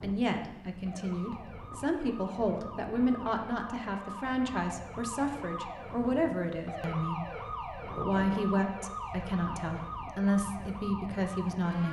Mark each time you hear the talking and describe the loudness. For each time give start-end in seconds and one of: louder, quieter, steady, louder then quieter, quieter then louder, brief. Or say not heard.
0.0-11.8 steady.